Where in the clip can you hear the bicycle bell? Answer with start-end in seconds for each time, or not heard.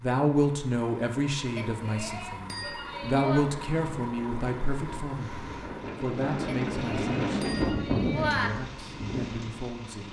1.6-3.5, 6.5-8.5.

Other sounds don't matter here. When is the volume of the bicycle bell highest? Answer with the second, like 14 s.
8 s.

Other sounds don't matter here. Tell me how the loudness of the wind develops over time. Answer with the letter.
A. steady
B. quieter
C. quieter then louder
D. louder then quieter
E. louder
D.